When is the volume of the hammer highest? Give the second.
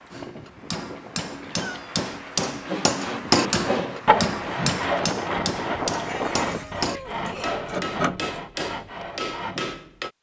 3 s.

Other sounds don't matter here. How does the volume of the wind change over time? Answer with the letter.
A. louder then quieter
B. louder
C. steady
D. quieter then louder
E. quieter
B.